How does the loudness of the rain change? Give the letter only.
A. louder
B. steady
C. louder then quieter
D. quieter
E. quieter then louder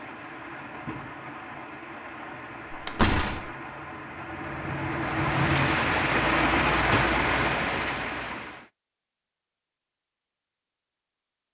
A.